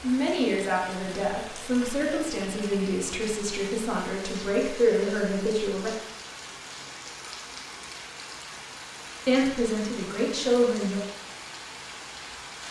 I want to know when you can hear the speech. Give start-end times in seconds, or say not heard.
0.0-5.9, 9.2-11.0.